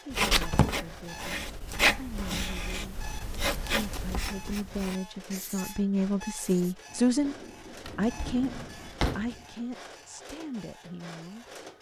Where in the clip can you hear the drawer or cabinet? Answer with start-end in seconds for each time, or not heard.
0.1-0.8, 7.8-9.3.